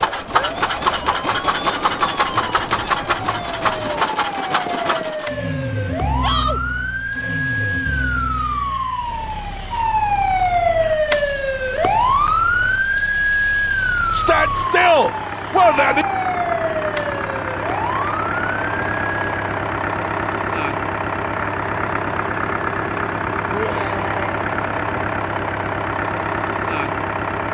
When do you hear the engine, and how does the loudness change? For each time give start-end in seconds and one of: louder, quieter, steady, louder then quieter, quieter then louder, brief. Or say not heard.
0.0-27.4 quieter then louder.